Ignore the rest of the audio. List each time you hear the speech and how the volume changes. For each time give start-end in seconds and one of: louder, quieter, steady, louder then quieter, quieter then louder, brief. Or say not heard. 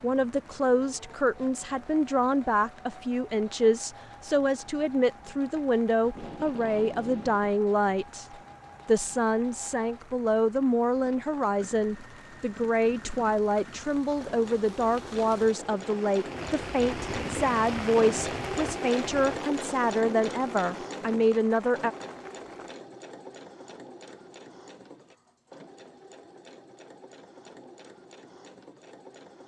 0.0-8.2 steady
8.8-21.9 steady.